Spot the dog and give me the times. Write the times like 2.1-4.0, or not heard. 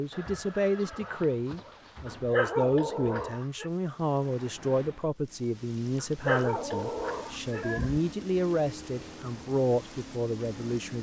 2.0-3.7, 6.0-8.0.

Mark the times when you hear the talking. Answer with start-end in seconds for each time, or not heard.
0.0-10.9.